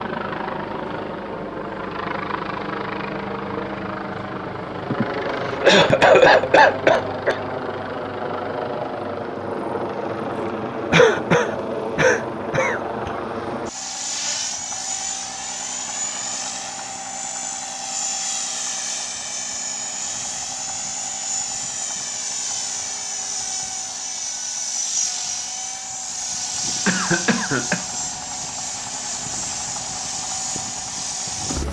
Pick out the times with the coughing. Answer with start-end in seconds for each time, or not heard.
4.9-7.4, 10.9-13.1, 26.9-28.0.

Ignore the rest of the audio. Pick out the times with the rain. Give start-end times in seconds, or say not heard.
not heard.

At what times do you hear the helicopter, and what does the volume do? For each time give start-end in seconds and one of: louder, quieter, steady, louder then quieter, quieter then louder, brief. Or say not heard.
0.0-31.6 steady.